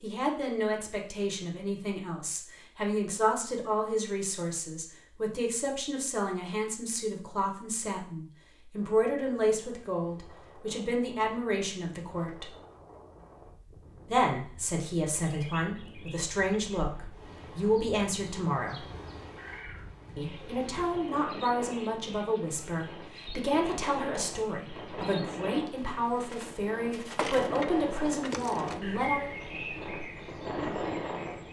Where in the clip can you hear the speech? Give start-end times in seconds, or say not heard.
0.0-12.6, 14.1-18.9, 20.1-29.3.